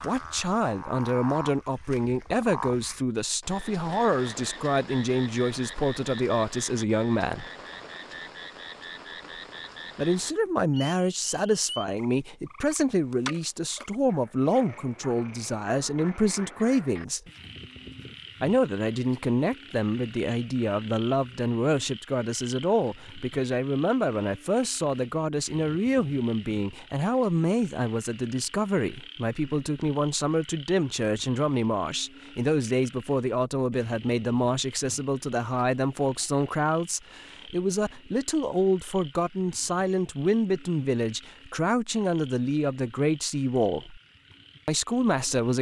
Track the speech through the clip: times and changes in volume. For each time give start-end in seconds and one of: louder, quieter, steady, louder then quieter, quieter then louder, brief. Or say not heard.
0.0-7.5 steady
9.9-17.2 steady
18.4-44.0 steady
44.6-45.5 brief.